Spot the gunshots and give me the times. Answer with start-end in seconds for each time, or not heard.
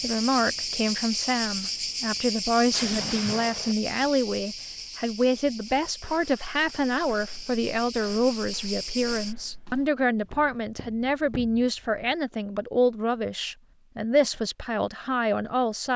2.7-3.8.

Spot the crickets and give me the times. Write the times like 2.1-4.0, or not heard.
0.0-9.3.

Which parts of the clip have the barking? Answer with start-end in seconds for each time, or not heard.
not heard.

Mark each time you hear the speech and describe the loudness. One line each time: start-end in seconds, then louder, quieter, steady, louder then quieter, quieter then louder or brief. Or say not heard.
0.0-15.9 steady.